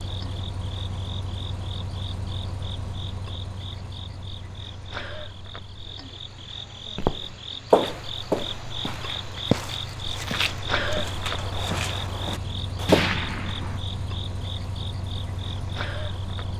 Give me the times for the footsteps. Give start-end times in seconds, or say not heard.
7.0-13.1.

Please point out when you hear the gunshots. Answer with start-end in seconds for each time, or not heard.
12.8-13.8.